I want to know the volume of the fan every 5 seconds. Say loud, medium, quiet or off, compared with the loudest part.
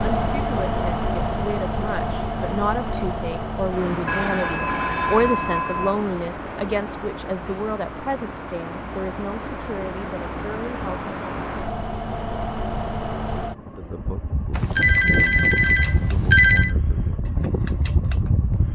loud, medium, loud, loud.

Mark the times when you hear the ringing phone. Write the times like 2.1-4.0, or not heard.
4.0-6.0, 14.5-16.8.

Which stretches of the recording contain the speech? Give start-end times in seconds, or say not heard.
0.0-11.1, 13.8-17.1.